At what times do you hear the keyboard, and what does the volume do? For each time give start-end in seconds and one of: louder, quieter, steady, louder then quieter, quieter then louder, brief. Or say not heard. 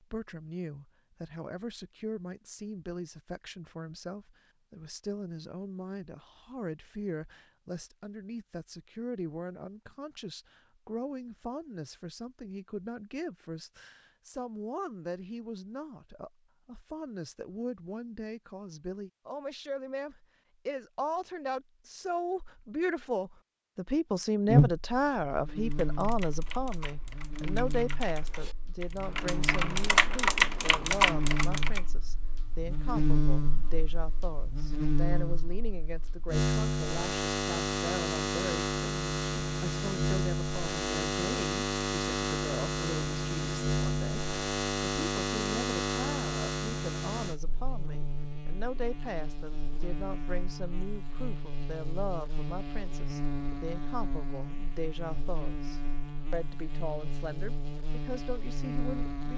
25.7-31.8 louder.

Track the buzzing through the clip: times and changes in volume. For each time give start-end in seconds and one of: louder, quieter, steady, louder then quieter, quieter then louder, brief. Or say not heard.
24.4-59.3 louder then quieter.